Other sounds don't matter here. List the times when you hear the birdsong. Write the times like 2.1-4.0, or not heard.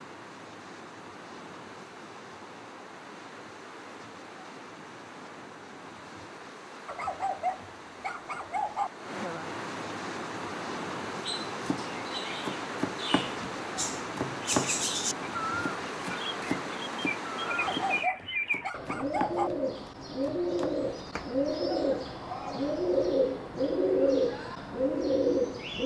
11.2-25.8.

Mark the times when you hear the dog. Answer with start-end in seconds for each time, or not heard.
6.8-8.9, 17.4-19.5.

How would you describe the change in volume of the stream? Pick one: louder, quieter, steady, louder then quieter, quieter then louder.
louder.